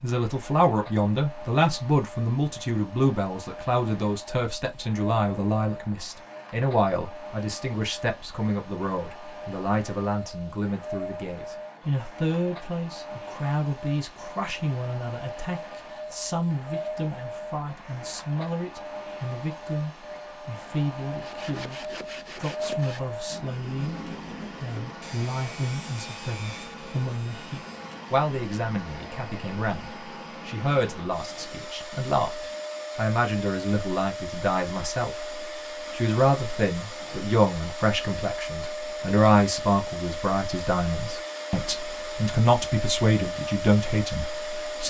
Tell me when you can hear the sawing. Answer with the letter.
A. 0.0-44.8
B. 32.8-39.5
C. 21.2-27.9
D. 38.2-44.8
C.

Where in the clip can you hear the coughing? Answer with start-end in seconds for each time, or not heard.
not heard.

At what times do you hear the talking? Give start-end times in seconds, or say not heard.
0.0-44.8.